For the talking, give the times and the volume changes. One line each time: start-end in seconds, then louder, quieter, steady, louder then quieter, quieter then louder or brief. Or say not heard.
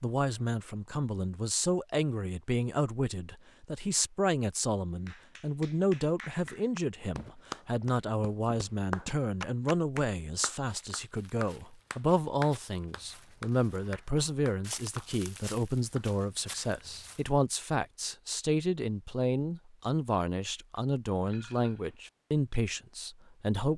0.0-23.7 steady.